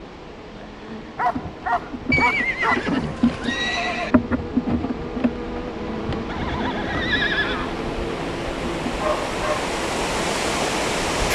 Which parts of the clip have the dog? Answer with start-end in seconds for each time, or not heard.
1.1-2.9, 8.8-9.8.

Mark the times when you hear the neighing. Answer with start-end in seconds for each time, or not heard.
2.1-4.2, 6.2-7.8.